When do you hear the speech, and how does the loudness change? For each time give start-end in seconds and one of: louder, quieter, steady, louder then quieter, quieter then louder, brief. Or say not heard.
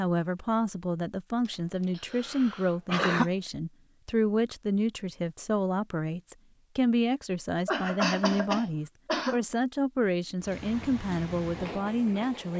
0.0-12.5 steady.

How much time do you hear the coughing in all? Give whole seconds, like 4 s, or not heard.
4 s.